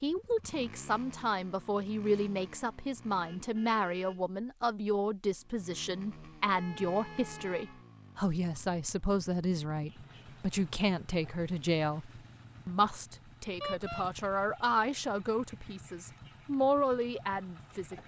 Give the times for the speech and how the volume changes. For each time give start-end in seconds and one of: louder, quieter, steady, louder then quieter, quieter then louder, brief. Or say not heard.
0.0-17.9 steady.